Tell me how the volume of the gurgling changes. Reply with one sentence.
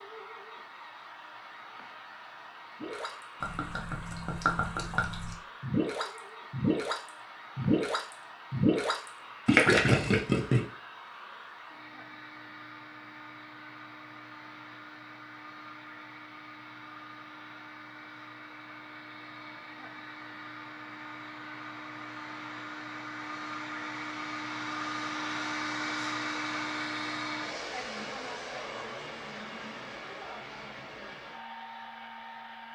The volume of the gurgling goes up.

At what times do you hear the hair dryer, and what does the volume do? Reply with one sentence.
You can hear the hair dryer from 0.0 to 32.7 s, getting louder.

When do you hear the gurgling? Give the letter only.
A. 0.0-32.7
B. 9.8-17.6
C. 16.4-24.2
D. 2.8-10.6
D.